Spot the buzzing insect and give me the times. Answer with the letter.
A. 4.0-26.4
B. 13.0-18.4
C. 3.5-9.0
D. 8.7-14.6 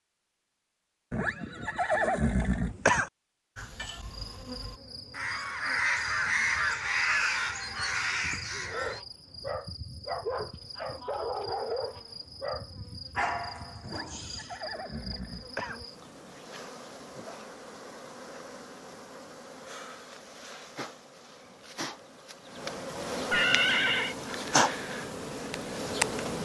A.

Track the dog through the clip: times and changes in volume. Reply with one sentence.
You can hear the dog from 8.7 to 14.6 s, at a steady volume.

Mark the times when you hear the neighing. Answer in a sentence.
You can hear the neighing from 1.1 to 3.1 s, from 13.8 to 15.8 s and from 23.3 to 24.1 s.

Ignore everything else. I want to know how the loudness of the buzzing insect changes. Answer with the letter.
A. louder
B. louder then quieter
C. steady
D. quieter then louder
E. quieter
A.